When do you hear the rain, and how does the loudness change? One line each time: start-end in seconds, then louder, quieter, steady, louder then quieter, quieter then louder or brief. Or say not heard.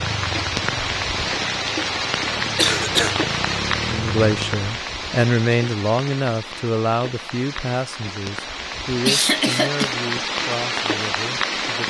0.0-11.8 quieter then louder.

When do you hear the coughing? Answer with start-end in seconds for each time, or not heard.
2.5-3.1, 9.1-9.9.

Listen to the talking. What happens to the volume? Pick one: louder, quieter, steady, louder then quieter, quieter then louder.
quieter.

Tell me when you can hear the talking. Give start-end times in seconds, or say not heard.
3.9-11.8.